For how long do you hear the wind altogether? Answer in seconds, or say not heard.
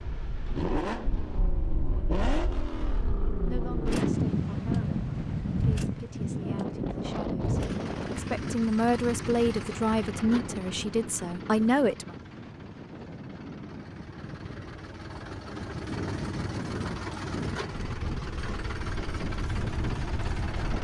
21 s.